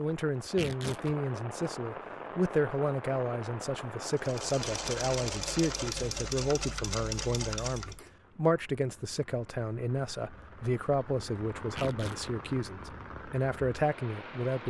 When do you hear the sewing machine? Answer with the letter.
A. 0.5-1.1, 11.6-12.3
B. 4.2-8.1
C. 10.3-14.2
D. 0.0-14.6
B.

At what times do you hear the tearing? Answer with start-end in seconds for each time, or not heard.
0.5-1.1, 11.6-12.3.